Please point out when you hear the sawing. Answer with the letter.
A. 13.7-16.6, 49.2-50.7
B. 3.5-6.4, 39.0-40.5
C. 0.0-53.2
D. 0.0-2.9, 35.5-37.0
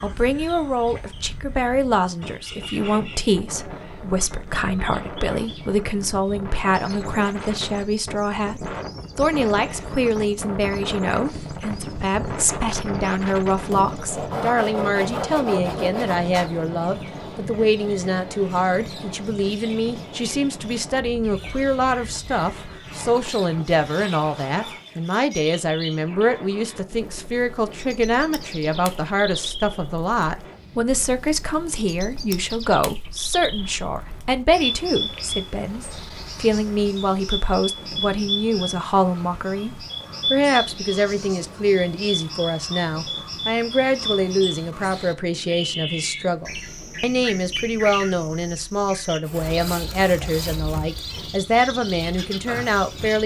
A.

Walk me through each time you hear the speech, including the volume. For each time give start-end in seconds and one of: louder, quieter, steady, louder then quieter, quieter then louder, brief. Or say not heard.
0.0-53.2 steady.